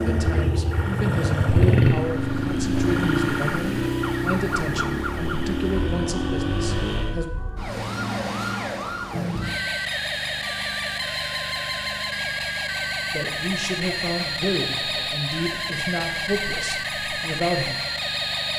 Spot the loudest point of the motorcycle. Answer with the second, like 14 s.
2 s.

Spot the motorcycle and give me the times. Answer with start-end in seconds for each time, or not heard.
0.1-7.2.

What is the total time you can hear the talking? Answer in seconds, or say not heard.
12 s.